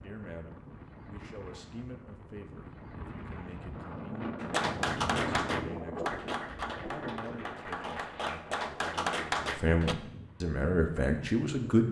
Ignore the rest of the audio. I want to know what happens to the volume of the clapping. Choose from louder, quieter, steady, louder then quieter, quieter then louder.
quieter then louder.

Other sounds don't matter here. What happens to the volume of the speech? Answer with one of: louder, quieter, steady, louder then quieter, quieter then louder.
louder.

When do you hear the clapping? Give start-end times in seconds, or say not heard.
4.4-9.9.